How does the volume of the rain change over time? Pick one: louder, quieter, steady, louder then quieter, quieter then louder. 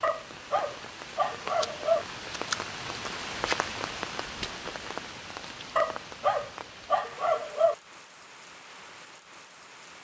louder then quieter.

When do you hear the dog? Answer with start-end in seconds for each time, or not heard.
0.0-2.0, 5.8-7.8.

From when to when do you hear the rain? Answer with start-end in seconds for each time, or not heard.
0.0-9.9.